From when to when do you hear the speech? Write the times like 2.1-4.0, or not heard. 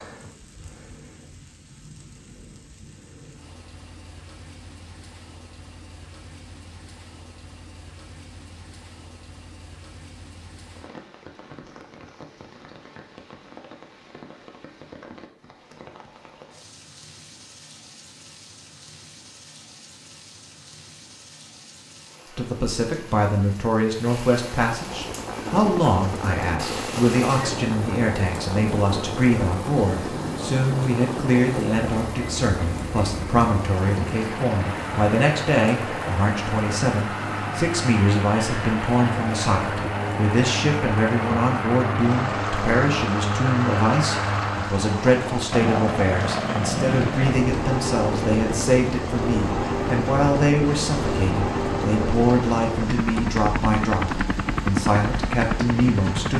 22.4-56.3.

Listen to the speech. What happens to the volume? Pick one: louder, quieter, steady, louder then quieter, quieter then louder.
steady.